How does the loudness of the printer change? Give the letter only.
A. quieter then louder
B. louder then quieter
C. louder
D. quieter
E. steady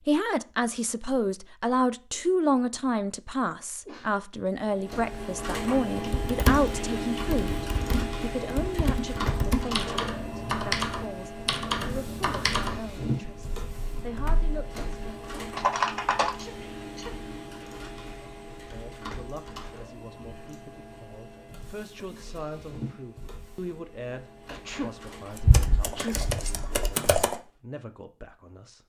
D.